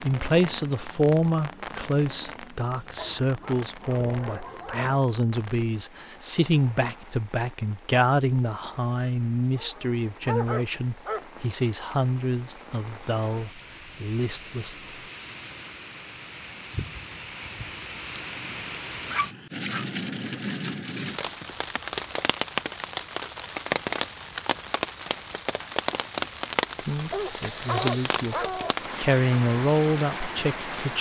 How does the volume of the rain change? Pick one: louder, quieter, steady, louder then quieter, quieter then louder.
quieter then louder.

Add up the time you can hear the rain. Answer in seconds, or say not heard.
31 s.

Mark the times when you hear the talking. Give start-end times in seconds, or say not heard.
0.0-14.8, 26.9-28.4, 28.9-30.9.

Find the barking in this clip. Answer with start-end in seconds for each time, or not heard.
3.0-5.0, 9.6-11.2, 19.1-19.9, 27.1-28.9.